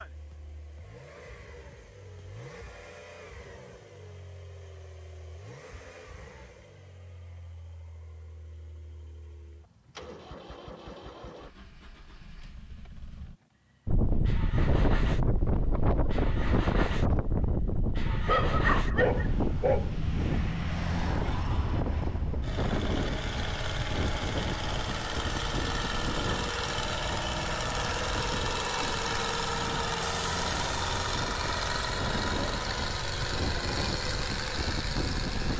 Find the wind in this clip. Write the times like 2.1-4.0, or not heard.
13.8-35.5.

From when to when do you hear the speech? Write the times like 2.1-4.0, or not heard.
not heard.